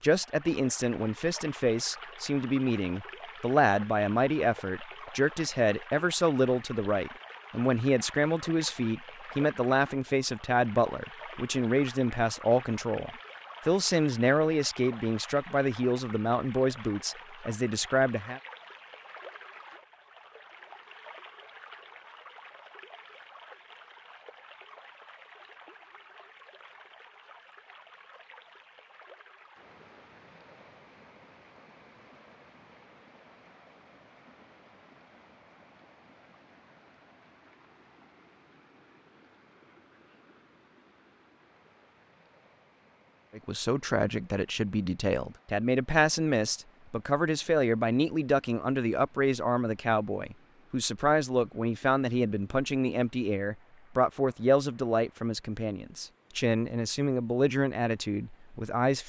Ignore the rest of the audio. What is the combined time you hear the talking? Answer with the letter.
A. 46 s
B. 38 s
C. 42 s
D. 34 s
D.